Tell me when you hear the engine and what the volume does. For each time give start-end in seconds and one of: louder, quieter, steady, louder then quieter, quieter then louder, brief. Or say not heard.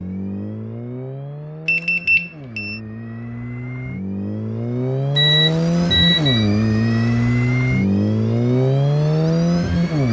0.0-10.0 louder.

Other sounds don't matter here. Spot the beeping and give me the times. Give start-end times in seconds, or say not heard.
1.6-2.8, 5.2-6.5.